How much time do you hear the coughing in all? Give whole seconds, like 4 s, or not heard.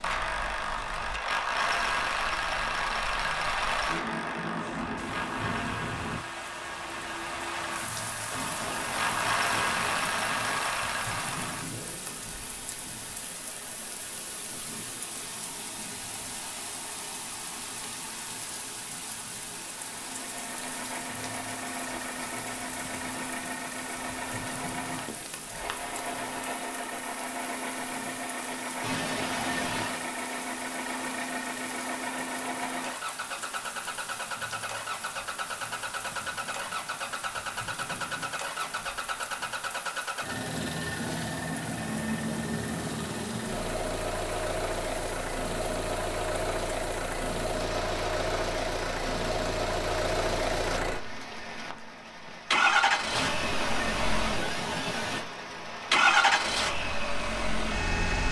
6 s.